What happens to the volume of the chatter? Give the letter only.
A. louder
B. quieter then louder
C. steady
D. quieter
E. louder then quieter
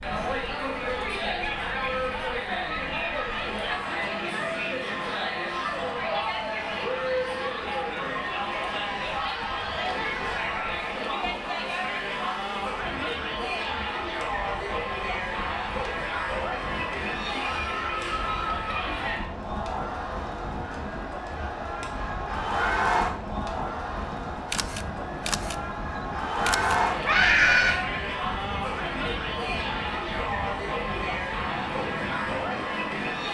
C.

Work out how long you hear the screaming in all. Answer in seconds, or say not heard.
2 s.